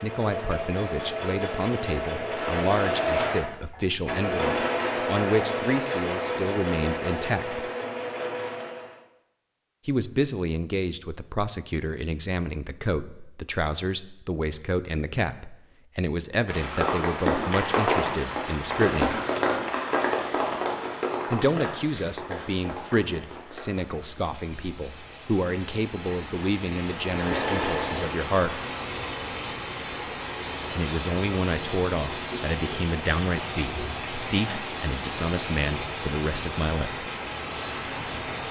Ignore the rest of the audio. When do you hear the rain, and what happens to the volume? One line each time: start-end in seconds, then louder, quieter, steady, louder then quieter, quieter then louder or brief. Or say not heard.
16.4-38.4 quieter then louder.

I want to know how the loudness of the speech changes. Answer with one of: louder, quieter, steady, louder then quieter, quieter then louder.
steady.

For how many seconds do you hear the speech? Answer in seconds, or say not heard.
31 s.